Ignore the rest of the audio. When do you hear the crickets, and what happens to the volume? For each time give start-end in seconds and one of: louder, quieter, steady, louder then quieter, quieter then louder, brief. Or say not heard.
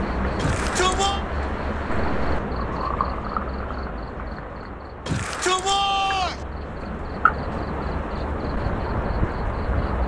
0.0-10.0 quieter then louder.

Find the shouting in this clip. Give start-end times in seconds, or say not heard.
0.3-1.2, 5.0-6.5.